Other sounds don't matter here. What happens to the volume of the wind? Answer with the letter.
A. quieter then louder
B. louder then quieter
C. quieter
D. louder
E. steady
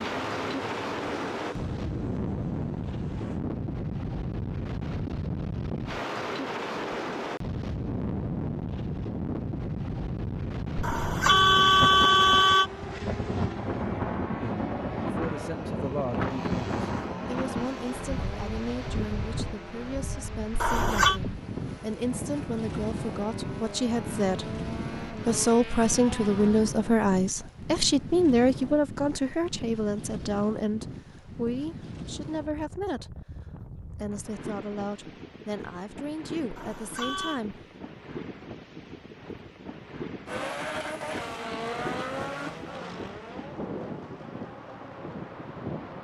C.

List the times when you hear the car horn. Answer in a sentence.
You can hear the car horn from 10.8 to 12.7 s, from 20.5 to 21.2 s and from 36.5 to 37.4 s.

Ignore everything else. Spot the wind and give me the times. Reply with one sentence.
The wind can be heard from 0.0 to 45.9 s.